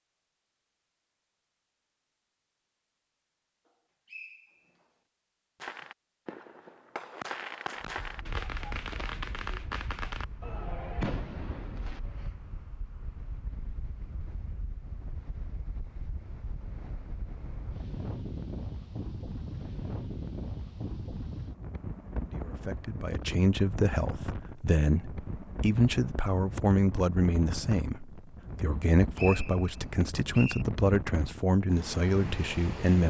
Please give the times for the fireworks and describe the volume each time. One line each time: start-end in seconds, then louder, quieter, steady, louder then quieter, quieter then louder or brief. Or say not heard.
5.5-12.3 louder.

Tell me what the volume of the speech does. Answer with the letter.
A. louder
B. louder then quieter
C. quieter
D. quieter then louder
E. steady
E.